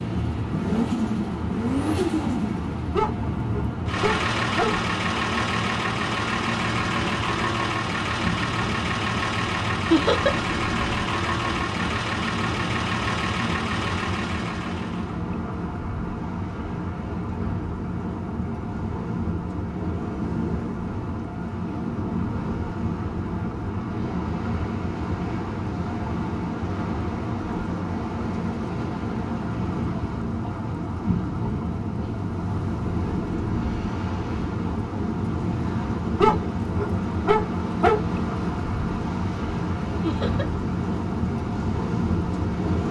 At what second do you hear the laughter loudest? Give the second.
10 s.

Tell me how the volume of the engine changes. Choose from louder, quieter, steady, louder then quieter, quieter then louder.
steady.